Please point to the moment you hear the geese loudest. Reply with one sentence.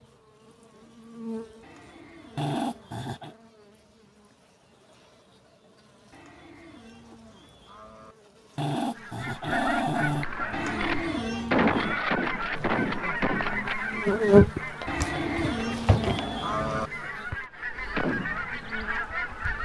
The loudest moment of the geese is at 12 seconds.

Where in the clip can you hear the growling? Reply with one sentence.
You can hear the growling from 2.4 to 3.4 s, from 8.6 to 10.2 s and from 15.1 to 16.9 s.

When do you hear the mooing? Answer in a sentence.
You can hear the mooing from 1.6 to 3.1 s, from 6.1 to 8.2 s, from 10.5 to 12.0 s and from 14.8 to 16.9 s.